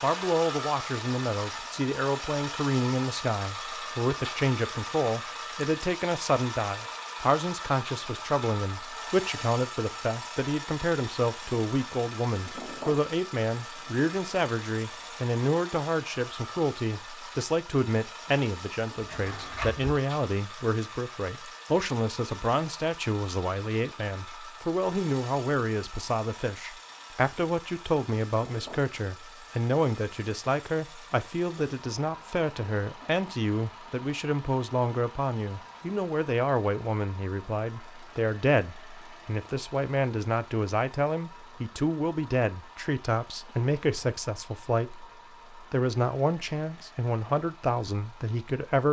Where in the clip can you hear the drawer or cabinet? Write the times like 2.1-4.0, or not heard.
18.9-19.9.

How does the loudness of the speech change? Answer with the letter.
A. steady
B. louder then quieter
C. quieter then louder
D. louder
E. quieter
A.